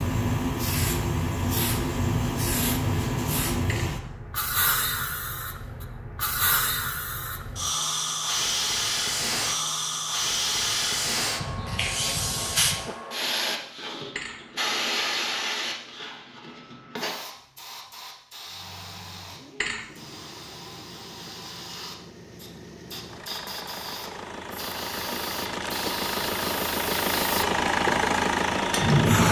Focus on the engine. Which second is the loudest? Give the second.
28 s.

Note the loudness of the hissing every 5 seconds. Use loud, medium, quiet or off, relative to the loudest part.
loud, loud, loud, medium, quiet, loud.